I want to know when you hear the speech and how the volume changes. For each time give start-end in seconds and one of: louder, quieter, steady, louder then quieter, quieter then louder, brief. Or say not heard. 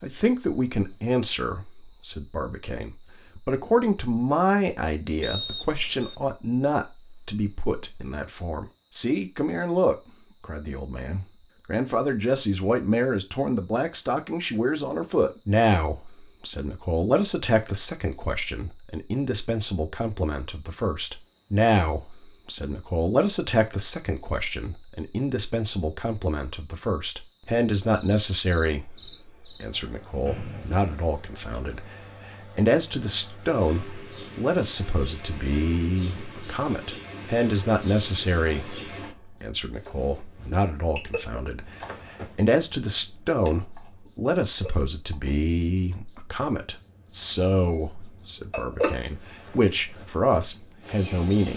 0.0-51.5 steady.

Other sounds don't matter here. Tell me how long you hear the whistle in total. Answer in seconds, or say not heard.
2 s.